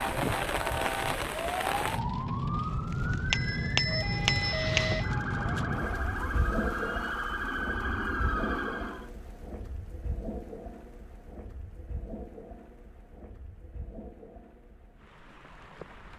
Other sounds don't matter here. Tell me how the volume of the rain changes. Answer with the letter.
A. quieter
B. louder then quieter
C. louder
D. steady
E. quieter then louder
A.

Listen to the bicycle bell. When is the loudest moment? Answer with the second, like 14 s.
4 s.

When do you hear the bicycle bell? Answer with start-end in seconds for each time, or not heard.
3.3-5.2.